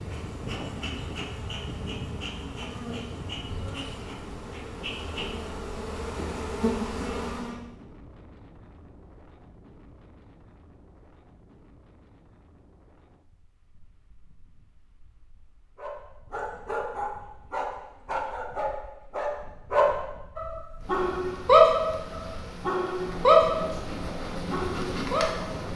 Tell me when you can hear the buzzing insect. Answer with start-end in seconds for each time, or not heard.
0.0-7.5, 20.6-25.7.